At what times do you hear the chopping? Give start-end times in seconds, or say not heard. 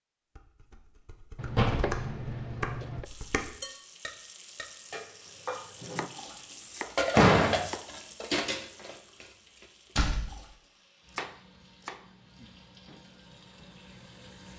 1.4-3.0, 6.0-7.9, 11.1-13.0.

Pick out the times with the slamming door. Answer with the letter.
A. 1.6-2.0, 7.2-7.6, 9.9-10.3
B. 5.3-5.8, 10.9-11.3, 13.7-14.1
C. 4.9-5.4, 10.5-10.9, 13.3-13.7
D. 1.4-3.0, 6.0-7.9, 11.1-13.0
A.